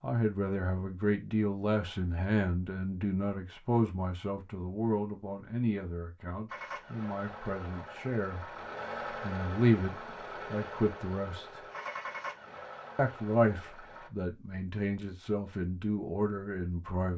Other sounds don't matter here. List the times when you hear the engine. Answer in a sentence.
You can hear the engine from 6.5 to 14.1 s.